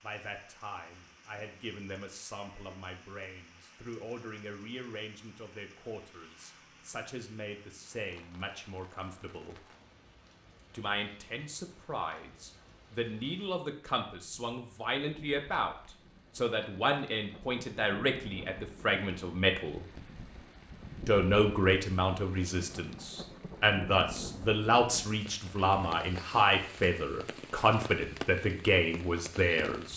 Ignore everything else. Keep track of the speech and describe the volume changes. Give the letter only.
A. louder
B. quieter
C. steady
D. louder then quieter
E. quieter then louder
A.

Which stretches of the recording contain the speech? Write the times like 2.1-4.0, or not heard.
0.0-9.7, 10.7-15.8, 16.4-19.9, 21.1-29.9.